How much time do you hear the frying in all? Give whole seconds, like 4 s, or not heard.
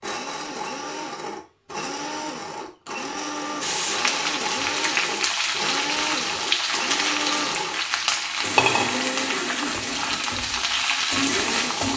8 s.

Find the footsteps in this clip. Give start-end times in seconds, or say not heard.
not heard.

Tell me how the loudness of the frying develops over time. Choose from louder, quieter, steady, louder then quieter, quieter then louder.
steady.